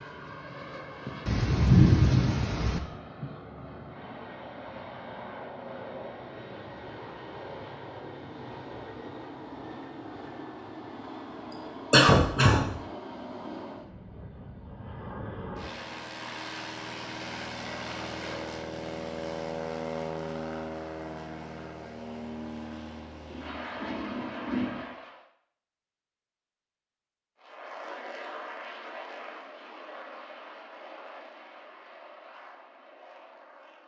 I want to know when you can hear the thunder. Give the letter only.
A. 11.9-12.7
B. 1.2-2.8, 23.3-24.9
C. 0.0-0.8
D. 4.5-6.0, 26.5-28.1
B.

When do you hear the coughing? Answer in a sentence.
You can hear the coughing from 11.9 to 12.7 s.